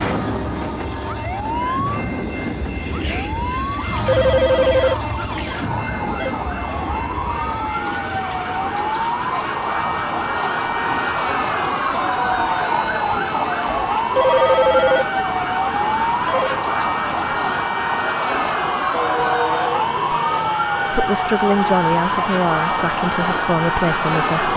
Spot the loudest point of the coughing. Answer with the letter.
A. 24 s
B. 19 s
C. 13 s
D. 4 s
B.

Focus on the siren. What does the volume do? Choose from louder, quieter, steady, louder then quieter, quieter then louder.
louder.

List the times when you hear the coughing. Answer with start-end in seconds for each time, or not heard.
2.7-3.3, 18.9-19.9.